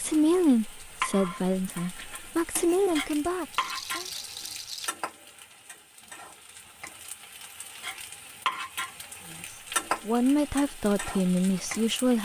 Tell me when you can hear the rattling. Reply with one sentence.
The rattling can be heard from 3.5 to 5.0 s.